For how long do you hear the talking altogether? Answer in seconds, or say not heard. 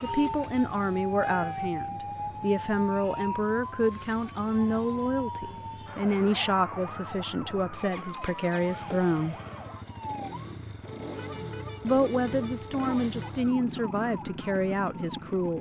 13 s.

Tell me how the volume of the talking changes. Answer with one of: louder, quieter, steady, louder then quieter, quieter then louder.
steady.